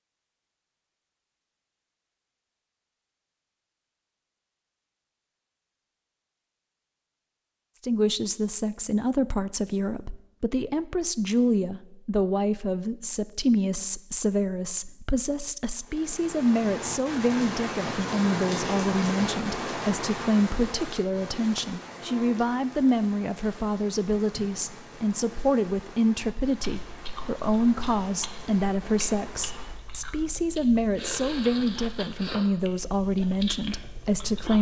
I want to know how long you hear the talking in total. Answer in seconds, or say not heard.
27 s.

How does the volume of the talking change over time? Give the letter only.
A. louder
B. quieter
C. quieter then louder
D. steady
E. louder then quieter
D.